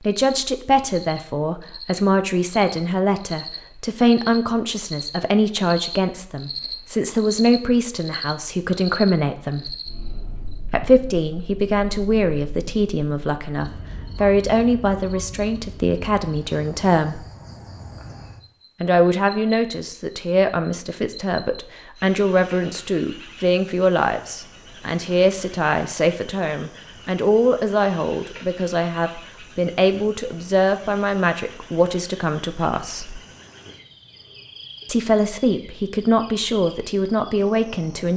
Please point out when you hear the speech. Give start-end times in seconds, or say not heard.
0.0-9.8, 10.7-17.2, 18.8-33.2, 34.9-38.1.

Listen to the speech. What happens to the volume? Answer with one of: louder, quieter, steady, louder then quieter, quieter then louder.
steady.